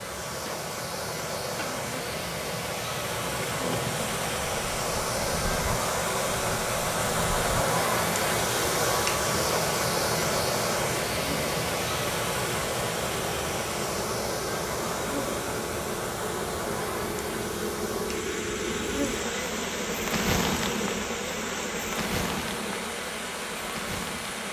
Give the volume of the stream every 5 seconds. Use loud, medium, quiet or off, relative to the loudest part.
medium, loud, loud, medium, medium.